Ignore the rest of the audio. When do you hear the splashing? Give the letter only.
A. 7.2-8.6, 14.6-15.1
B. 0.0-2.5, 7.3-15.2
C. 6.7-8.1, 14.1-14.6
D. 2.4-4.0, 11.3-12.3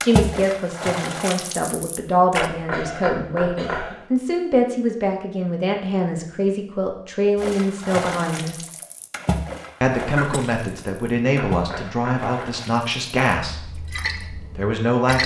B.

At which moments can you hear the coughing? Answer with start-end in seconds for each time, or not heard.
2.7-4.1, 10.1-10.7.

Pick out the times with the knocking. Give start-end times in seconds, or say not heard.
2.4-4.0, 11.3-12.3.